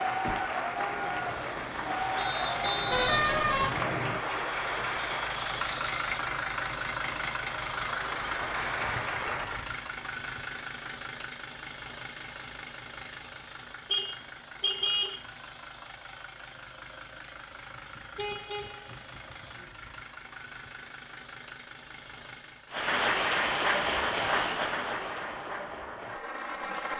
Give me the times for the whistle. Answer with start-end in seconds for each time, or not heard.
2.1-4.2.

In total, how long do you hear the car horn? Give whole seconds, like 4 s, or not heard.
3 s.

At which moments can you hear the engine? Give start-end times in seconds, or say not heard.
0.0-22.9.